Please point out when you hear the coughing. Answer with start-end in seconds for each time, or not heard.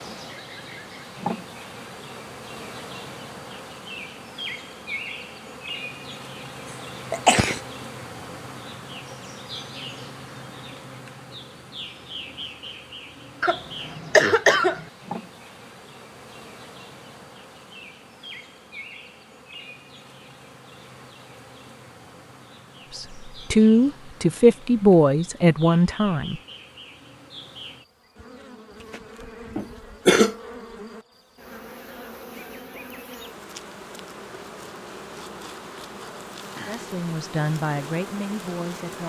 7.1-7.6, 13.4-14.8, 29.6-30.4.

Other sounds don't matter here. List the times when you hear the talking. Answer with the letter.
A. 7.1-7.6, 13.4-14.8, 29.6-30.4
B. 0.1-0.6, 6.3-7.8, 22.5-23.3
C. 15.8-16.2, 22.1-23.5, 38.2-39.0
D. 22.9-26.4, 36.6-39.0
D.